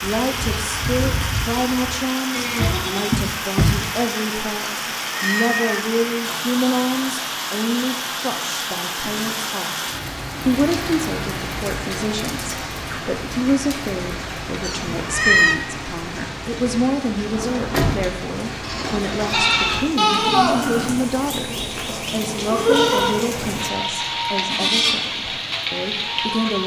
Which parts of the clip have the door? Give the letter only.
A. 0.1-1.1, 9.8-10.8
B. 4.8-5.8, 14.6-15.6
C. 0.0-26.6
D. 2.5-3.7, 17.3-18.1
D.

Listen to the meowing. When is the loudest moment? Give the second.
15 s.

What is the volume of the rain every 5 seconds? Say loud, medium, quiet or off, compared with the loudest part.
loud, loud, loud, medium, loud, loud.